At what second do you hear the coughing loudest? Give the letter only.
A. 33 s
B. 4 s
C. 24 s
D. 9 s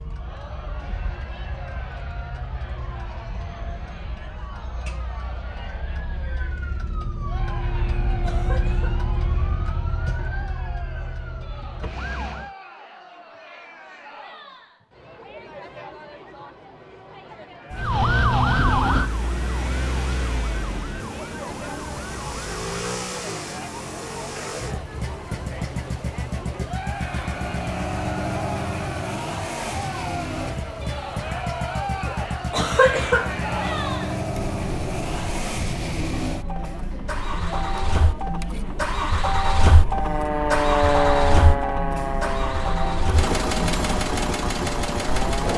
A.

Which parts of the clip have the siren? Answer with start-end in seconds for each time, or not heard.
0.0-12.6, 17.8-22.8, 39.9-45.5.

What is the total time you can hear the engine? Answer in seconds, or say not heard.
28 s.